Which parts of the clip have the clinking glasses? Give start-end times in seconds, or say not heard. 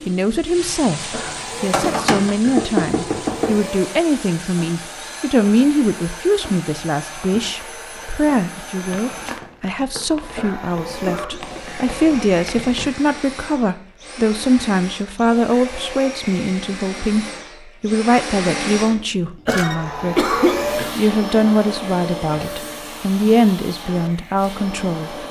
not heard.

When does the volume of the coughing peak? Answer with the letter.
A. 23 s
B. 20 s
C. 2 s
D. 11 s
B.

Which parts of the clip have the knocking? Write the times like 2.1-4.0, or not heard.
1.7-3.6.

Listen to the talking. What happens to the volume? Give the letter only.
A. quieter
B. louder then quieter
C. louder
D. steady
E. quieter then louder
D.